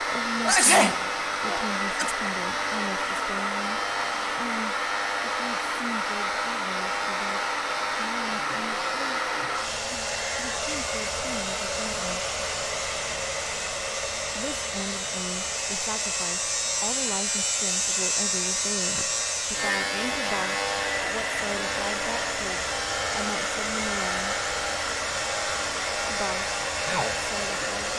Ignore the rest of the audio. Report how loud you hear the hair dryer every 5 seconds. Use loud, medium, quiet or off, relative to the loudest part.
loud, loud, loud, medium, loud, loud.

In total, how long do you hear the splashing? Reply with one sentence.
You can't hear the splashing here.